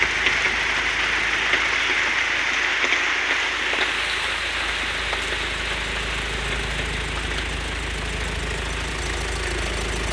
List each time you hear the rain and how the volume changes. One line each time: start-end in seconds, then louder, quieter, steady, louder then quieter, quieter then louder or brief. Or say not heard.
0.0-10.0 quieter.